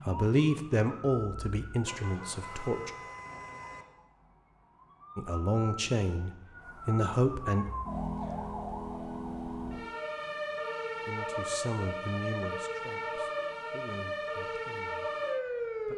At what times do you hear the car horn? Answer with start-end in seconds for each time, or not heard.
1.8-3.9.